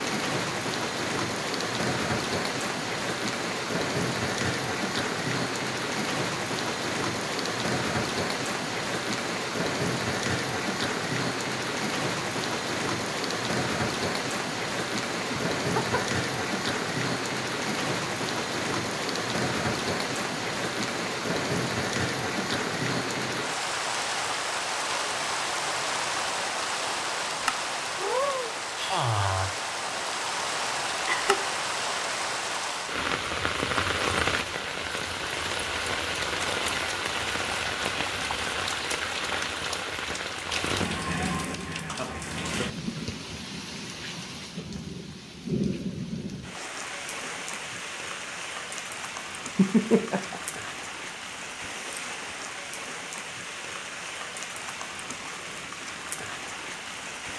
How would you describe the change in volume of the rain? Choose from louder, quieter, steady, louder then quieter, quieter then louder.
quieter.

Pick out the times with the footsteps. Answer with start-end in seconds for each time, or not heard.
not heard.